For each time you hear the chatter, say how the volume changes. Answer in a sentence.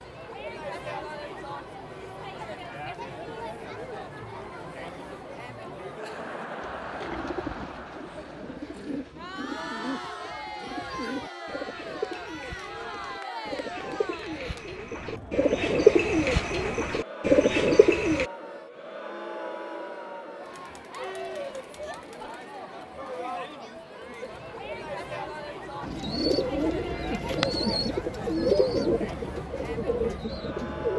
You can hear the chatter from 0.0 to 30.9 s, at a steady volume.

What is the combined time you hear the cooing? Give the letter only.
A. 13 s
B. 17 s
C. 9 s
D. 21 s
B.